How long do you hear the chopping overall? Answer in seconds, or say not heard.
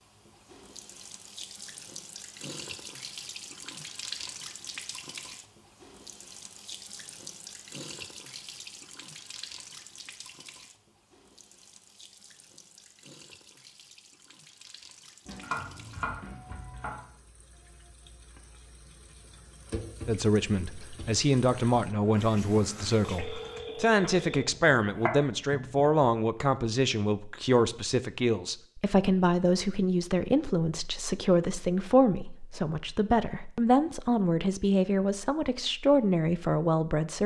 4 s.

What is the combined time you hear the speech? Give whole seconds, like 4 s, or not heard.
17 s.